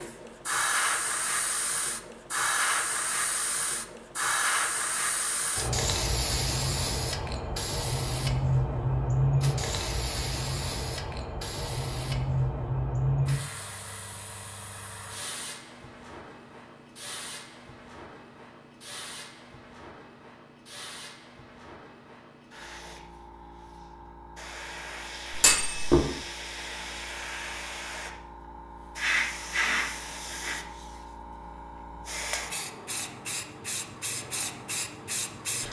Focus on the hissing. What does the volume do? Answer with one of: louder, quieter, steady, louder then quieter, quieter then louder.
quieter then louder.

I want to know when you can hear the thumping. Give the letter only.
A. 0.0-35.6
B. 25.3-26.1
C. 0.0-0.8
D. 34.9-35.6
B.